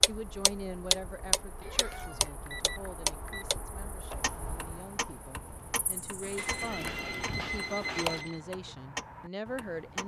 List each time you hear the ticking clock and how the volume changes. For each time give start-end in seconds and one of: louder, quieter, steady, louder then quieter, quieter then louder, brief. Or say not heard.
0.0-10.0 quieter then louder.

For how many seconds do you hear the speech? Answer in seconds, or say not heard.
10 s.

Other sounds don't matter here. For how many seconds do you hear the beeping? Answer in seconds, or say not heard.
3 s.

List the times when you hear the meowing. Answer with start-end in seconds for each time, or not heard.
1.6-2.4, 6.2-8.2.